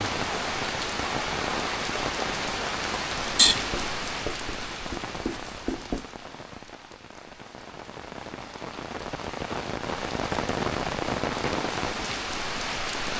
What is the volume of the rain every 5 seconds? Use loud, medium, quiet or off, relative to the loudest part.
loud, medium, loud.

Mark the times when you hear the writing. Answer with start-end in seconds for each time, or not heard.
3.4-6.0.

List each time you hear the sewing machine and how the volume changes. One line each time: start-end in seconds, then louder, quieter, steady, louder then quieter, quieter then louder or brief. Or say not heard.
not heard.